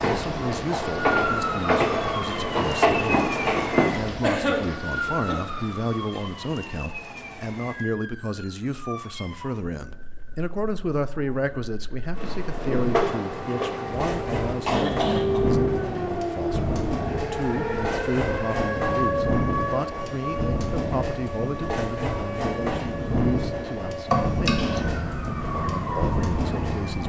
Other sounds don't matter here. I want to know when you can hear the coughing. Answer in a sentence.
You can hear the coughing from 4.2 to 5.3 s, from 14.7 to 15.4 s and from 24.1 to 24.8 s.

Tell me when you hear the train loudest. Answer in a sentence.
The loudest moment of the train is at 3 seconds.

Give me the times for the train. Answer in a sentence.
The train can be heard from 0.0 to 3.9 s and from 12.2 to 27.0 s.